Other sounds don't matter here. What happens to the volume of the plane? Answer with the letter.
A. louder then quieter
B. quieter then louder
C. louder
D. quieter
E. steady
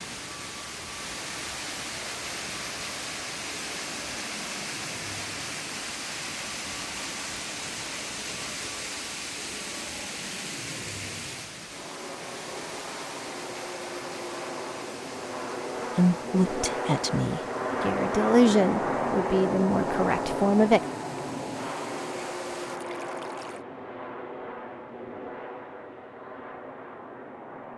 A.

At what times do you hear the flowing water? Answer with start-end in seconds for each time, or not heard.
0.0-23.6.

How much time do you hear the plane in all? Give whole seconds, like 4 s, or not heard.
28 s.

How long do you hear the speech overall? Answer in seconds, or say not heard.
5 s.